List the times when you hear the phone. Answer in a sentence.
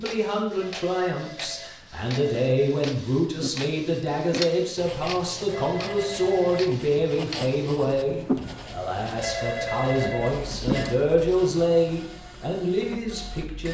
You can hear the phone from 0.6 to 2.7 s, from 5.5 to 6.7 s and from 9.2 to 10.9 s.